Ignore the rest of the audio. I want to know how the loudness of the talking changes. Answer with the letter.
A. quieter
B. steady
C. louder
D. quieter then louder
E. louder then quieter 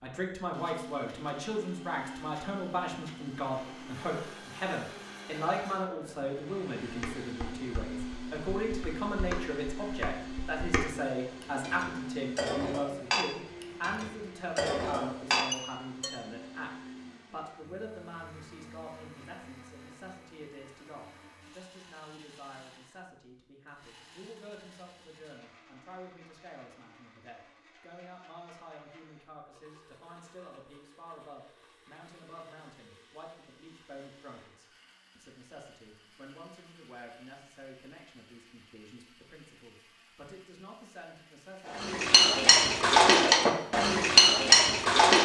A.